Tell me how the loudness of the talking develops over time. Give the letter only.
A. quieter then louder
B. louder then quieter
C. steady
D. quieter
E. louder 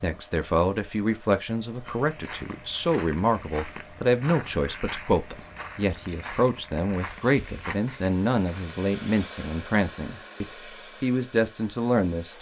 C.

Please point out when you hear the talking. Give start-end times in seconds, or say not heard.
0.0-12.3.